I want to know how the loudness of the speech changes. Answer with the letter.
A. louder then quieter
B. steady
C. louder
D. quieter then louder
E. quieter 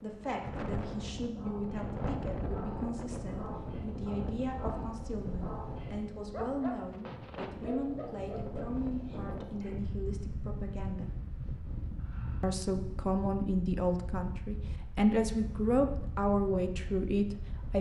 C.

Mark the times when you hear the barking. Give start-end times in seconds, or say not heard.
1.3-9.8.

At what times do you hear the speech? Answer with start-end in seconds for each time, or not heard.
0.0-11.2, 12.4-17.7.